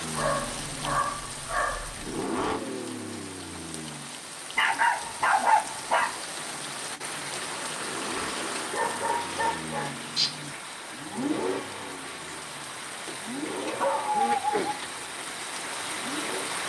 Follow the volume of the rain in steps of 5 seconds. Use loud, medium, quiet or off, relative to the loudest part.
medium, loud, loud, loud.